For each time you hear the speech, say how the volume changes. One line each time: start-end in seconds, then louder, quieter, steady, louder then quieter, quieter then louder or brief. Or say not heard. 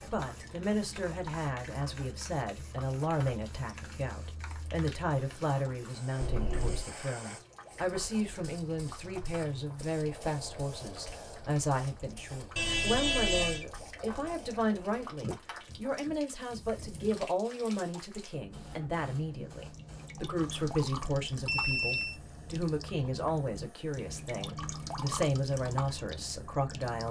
0.0-27.0 steady.